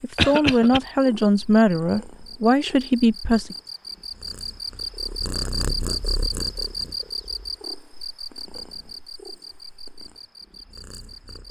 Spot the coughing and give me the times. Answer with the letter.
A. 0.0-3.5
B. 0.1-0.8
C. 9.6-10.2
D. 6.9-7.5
B.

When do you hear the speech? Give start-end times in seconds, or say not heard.
0.0-3.5.